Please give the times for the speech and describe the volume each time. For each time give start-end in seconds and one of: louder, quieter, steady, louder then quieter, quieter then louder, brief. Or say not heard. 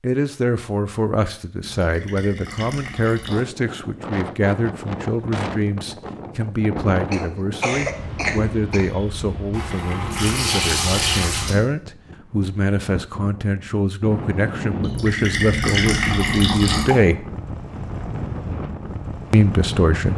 0.0-17.2 steady
19.3-20.1 brief.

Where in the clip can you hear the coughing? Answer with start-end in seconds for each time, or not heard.
7.1-8.9.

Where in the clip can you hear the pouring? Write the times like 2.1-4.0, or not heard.
1.6-3.5, 9.5-11.6, 14.8-17.0.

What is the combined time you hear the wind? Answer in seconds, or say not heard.
17 s.